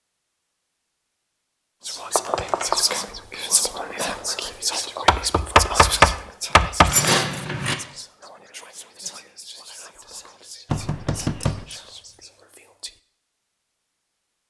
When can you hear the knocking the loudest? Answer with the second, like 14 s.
6 s.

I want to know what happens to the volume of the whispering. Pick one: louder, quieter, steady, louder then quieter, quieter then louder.
quieter.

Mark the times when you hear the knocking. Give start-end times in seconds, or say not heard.
2.1-2.8, 5.0-7.0, 10.7-11.7.